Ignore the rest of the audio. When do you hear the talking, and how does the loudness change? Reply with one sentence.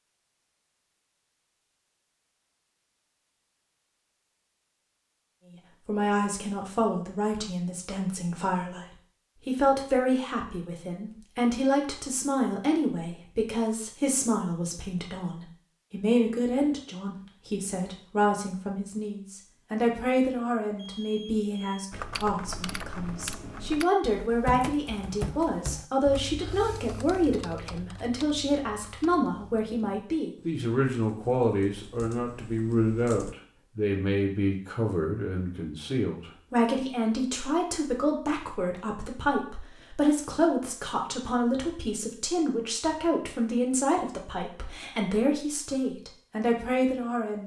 The talking can be heard from 5.8 to 47.4 s, at a steady volume.